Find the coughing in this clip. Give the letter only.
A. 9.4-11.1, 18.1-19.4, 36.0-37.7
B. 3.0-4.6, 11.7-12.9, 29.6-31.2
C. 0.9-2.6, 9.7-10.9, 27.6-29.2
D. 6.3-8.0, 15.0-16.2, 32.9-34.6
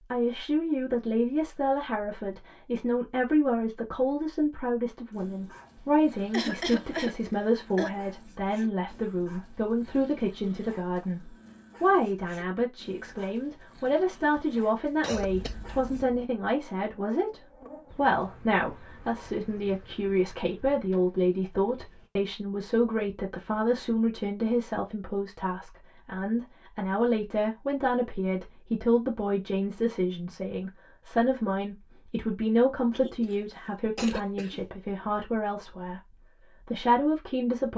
D.